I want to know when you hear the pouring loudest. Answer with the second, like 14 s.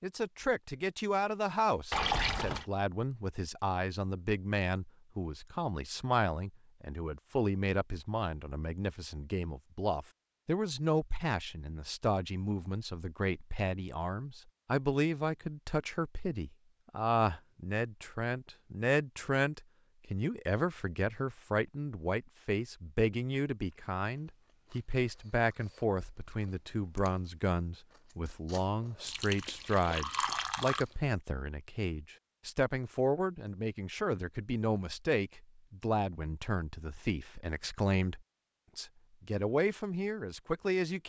2 s.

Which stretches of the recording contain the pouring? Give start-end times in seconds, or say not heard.
1.9-2.6, 29.1-30.9.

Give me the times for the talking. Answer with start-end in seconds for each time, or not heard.
0.0-41.0.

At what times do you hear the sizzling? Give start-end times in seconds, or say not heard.
not heard.